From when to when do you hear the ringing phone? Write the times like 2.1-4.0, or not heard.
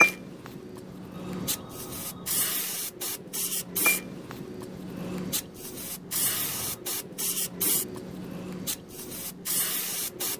0.8-2.5, 6.0-6.8.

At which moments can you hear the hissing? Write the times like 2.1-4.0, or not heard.
0.0-10.3.